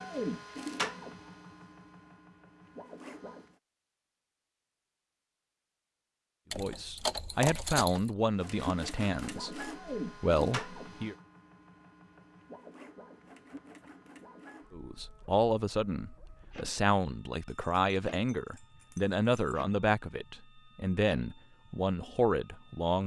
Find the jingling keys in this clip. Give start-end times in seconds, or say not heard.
6.5-8.1, 17.4-19.6.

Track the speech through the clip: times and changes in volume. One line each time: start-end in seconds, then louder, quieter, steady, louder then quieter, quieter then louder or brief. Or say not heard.
6.5-11.2 quieter then louder
14.7-23.0 steady.